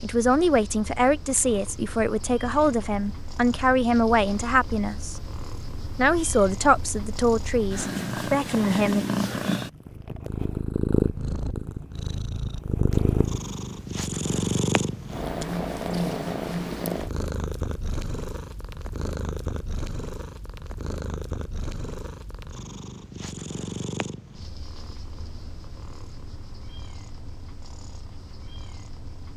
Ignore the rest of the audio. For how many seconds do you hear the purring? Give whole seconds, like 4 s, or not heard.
29 s.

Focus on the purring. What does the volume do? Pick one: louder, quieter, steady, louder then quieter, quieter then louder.
louder then quieter.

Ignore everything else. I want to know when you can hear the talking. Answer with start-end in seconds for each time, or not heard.
0.0-5.2, 6.0-9.1.